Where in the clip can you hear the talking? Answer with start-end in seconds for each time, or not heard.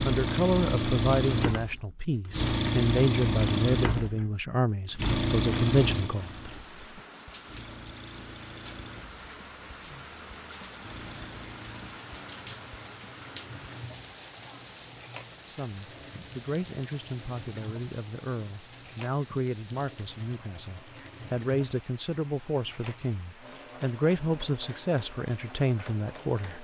0.0-6.3, 15.4-26.5.